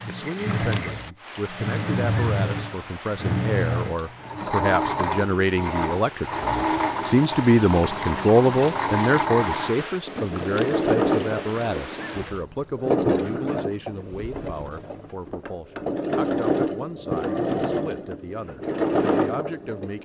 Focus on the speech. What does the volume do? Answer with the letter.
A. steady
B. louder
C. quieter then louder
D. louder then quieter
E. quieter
D.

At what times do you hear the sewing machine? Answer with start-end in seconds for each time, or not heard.
0.0-19.9.